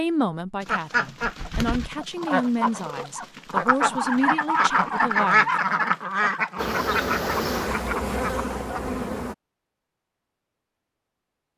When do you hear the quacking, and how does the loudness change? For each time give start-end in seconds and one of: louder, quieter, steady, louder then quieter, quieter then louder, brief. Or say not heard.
0.7-8.8 louder then quieter.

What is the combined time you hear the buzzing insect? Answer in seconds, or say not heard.
3 s.